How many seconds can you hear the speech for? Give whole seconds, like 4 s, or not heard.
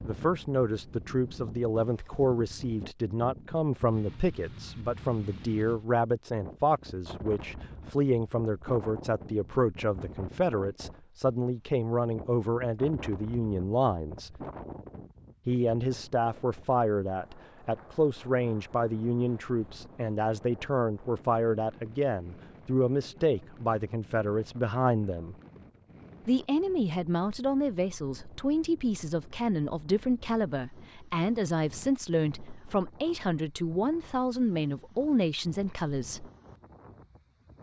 34 s.